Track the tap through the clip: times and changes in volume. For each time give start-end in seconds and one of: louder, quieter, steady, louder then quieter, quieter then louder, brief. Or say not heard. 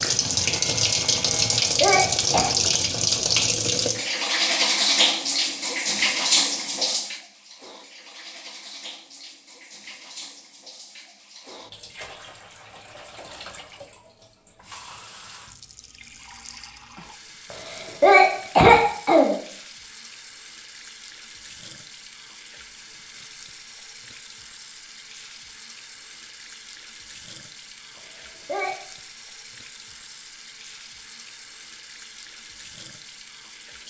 0.0-33.8 quieter.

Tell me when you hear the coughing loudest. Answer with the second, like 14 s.
19 s.